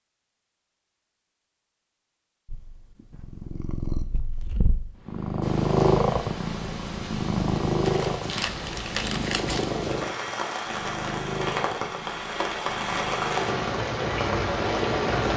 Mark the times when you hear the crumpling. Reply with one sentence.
The crumpling can be heard from 7.8 to 9.8 s.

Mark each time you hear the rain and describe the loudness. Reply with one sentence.
The rain can be heard from 5.4 to 15.3 s, getting louder.